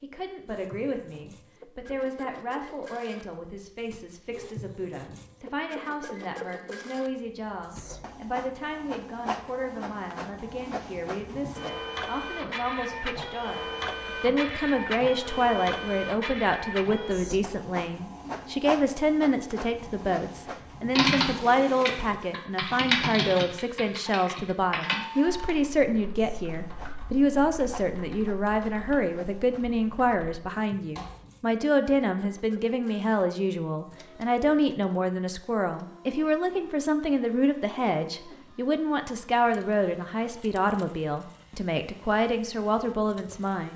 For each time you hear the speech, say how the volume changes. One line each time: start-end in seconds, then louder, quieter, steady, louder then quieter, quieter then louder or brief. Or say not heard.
0.0-43.7 louder.